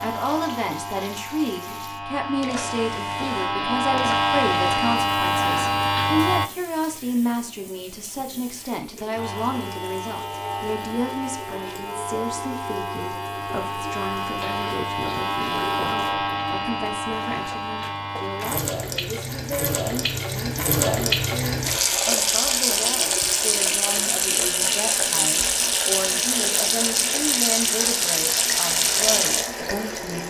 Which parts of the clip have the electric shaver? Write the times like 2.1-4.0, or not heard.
0.0-6.5, 9.2-18.6.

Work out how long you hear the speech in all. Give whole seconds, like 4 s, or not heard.
30 s.